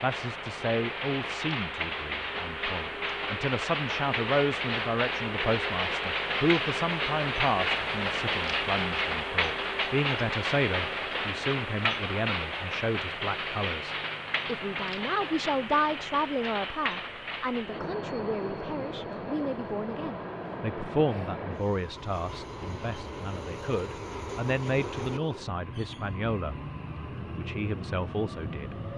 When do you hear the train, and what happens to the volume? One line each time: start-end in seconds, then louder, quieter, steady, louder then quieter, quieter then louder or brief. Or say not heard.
0.0-28.9 quieter.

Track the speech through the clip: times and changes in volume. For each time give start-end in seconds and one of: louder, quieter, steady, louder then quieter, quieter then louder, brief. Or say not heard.
0.0-26.6 steady
27.4-28.8 brief.